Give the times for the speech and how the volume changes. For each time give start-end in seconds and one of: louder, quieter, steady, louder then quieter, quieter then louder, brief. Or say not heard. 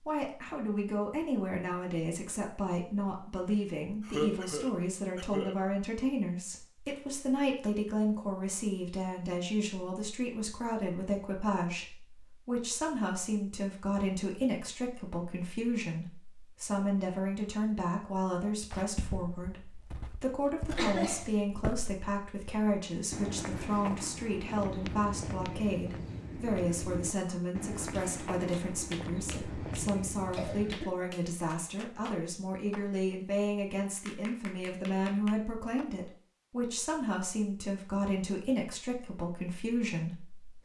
0.0-40.5 steady.